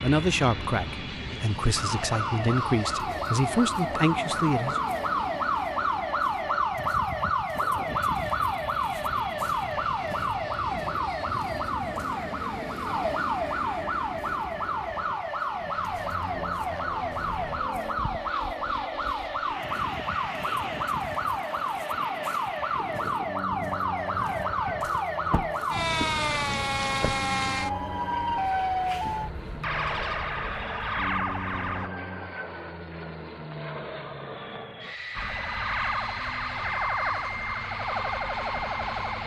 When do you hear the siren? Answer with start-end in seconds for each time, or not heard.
1.8-31.9, 35.1-39.2.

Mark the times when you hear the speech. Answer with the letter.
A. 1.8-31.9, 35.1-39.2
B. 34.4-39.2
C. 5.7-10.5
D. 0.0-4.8
D.